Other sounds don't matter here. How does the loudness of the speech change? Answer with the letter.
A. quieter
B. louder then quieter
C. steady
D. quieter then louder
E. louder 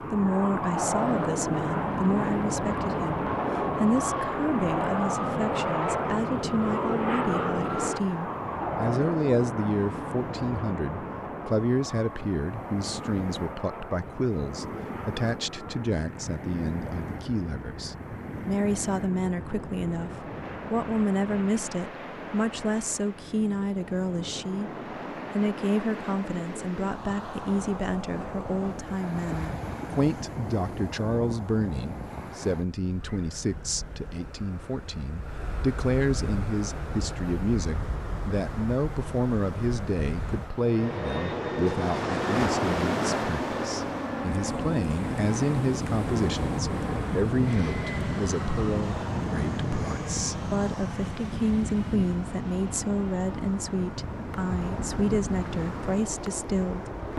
C.